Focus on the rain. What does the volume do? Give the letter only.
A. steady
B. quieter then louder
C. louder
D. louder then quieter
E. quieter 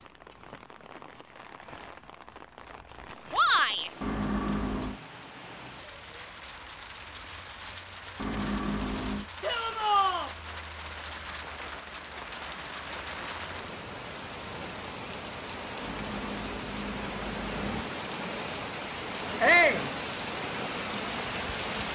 C.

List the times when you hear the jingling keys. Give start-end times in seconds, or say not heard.
4.0-5.0, 8.2-9.2, 15.8-17.9.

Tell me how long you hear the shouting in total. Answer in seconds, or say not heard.
2 s.